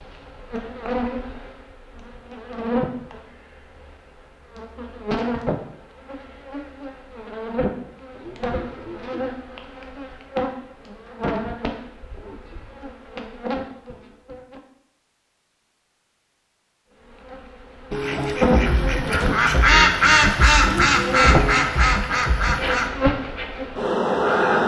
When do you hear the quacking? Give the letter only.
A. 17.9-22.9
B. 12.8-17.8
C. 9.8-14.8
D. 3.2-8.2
A.